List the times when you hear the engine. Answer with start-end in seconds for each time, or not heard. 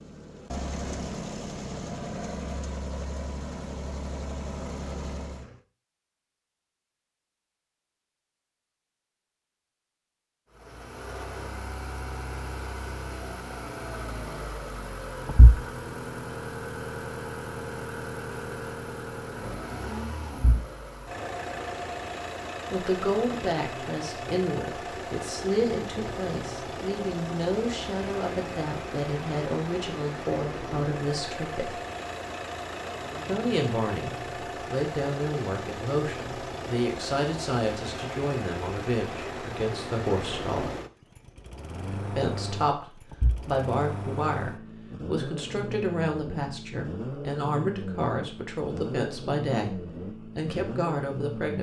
0.0-5.6, 10.5-51.5.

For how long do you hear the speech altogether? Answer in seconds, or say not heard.
26 s.